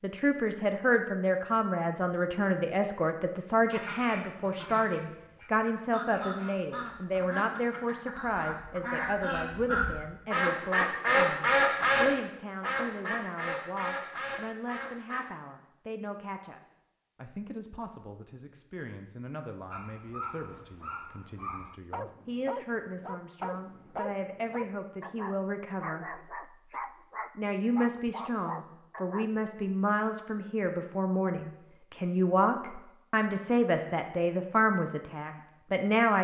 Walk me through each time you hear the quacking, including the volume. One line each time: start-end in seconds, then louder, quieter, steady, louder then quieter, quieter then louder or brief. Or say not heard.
3.6-15.3 louder then quieter.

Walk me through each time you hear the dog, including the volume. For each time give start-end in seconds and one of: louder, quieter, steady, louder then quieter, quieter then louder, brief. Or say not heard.
19.7-29.3 steady.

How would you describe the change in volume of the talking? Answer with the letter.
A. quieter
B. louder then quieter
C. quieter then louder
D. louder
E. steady
C.